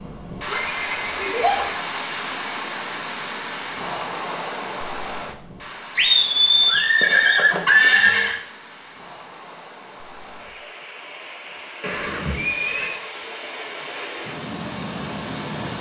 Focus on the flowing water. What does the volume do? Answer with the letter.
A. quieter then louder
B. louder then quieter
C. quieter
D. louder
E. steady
A.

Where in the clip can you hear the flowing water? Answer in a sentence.
The flowing water can be heard from 0.0 to 15.7 s.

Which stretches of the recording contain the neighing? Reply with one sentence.
The neighing can be heard from 0.5 to 1.8 s, from 6.0 to 8.4 s and from 11.8 to 12.9 s.